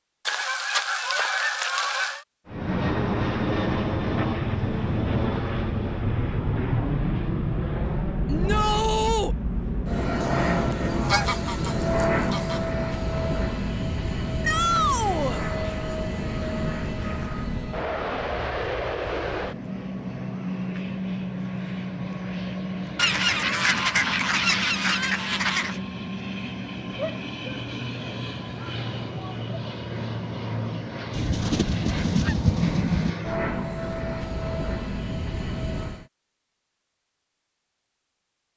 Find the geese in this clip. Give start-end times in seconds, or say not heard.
0.2-2.2, 10.2-12.6, 22.9-25.8, 31.1-33.1.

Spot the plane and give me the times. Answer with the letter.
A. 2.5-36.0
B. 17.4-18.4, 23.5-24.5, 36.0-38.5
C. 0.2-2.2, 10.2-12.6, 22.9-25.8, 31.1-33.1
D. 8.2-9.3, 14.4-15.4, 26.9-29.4
A.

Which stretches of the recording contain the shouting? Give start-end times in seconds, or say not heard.
8.2-9.3, 14.4-15.4, 26.9-29.4.